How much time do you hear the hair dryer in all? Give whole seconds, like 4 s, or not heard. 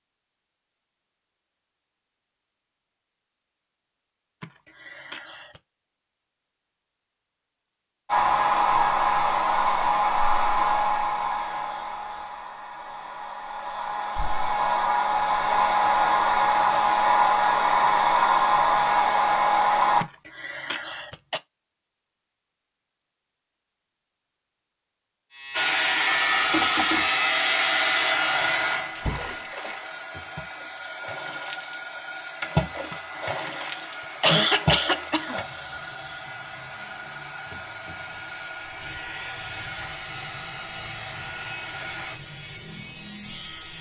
29 s.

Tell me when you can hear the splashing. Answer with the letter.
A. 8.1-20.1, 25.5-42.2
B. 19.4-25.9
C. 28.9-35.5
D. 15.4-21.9
C.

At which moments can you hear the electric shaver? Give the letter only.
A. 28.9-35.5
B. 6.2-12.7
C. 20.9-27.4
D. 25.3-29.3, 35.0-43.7
D.